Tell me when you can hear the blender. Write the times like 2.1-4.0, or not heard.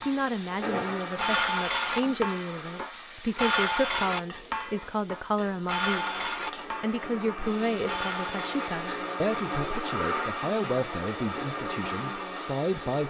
0.0-2.9, 5.8-13.0.